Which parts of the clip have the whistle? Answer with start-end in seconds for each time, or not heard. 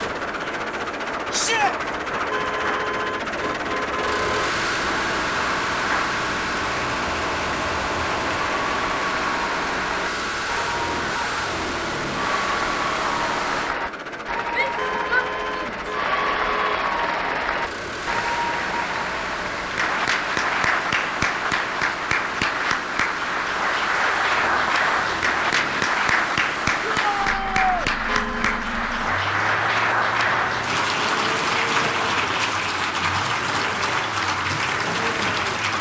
not heard.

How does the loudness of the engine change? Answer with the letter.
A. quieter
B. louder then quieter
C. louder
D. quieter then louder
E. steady
A.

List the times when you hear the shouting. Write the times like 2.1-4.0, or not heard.
1.3-1.8, 14.5-15.9, 26.9-27.9.